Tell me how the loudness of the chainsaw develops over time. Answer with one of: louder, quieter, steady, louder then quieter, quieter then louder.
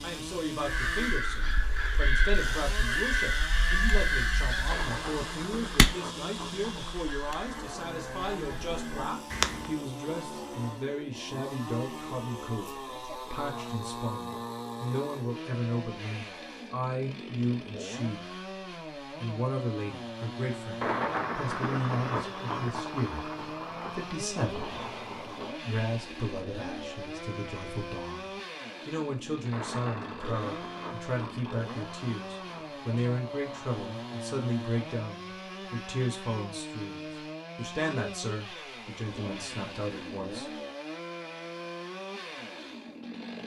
steady.